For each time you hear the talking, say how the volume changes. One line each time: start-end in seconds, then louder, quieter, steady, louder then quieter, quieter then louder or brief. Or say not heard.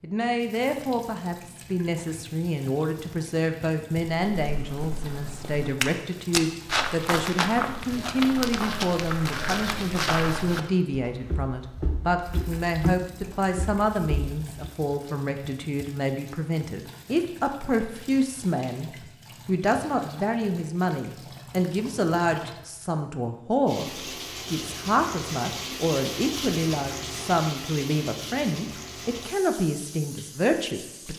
0.0-31.1 steady.